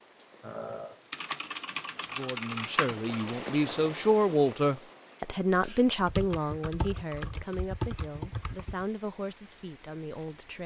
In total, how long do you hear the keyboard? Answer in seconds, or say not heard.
5 s.